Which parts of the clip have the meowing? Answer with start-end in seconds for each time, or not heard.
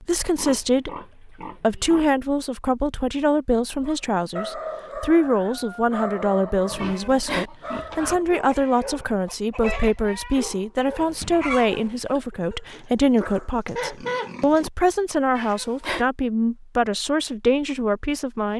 6.8-7.5, 15.3-16.1.